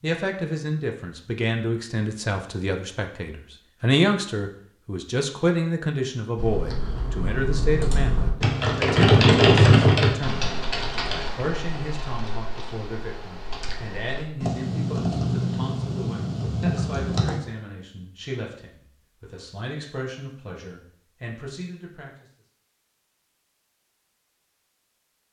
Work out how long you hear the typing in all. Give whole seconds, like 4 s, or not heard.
11 s.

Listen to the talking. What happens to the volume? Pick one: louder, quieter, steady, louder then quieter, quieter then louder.
quieter.